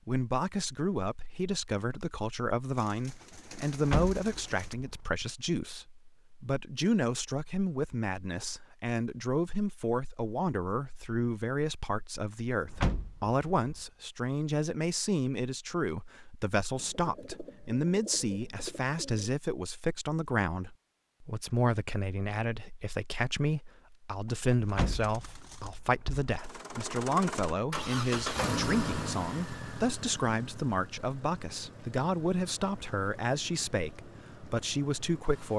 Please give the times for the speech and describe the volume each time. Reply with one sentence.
You can hear the speech from 0.1 to 35.5 s, at a steady volume.